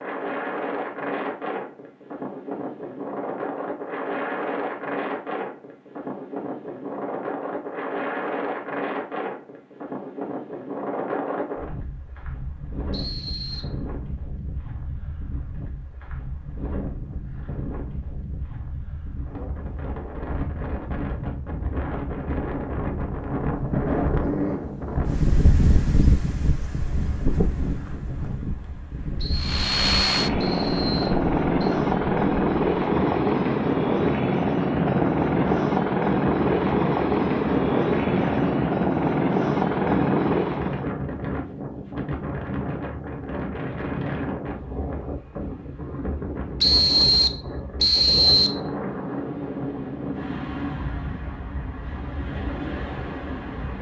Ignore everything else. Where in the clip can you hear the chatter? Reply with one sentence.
You can't hear the chatter here.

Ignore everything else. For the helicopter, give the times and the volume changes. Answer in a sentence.
The helicopter can be heard from 29.3 to 40.9 s, at a steady volume.